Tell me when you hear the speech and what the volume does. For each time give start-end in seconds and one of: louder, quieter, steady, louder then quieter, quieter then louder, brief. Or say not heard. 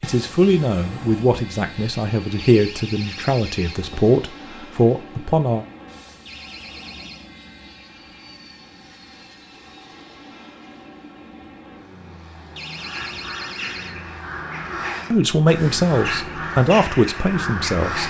0.0-5.7 quieter then louder
15.1-18.0 brief.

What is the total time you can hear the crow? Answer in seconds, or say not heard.
5 s.